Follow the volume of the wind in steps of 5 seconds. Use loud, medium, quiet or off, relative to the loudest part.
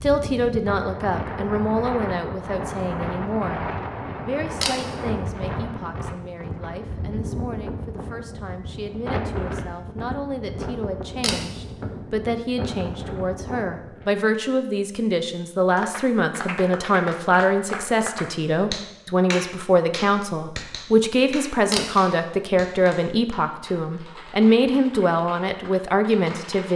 loud, loud, loud, off, off, off.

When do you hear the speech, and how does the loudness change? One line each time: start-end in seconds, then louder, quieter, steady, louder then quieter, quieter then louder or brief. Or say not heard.
0.0-26.7 quieter then louder.